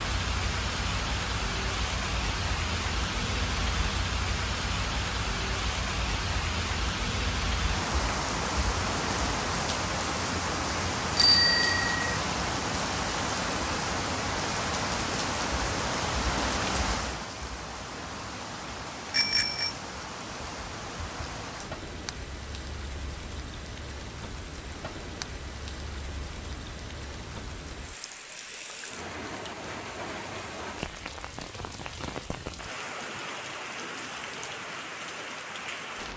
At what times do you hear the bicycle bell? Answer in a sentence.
The bicycle bell can be heard from 11.2 to 12.0 s and from 19.1 to 19.7 s.